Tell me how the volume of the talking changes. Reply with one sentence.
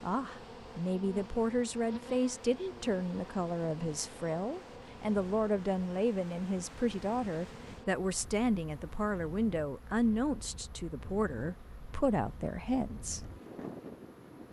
The loudness of the talking stays about the same.